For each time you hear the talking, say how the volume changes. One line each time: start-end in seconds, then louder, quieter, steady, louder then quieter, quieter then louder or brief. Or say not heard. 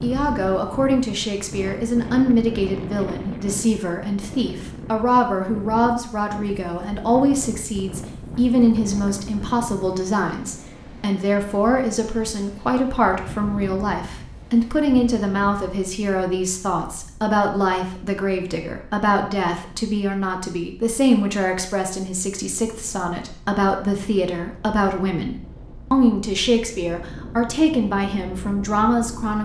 0.0-29.3 steady.